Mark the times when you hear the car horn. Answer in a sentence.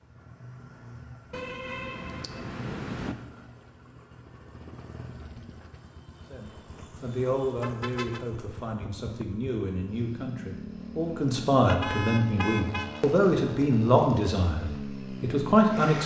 You can hear the car horn from 1.3 to 3.1 s, from 7.0 to 8.2 s and from 11.7 to 13.1 s.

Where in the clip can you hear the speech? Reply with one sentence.
You can hear the speech from 6.3 to 16.0 s.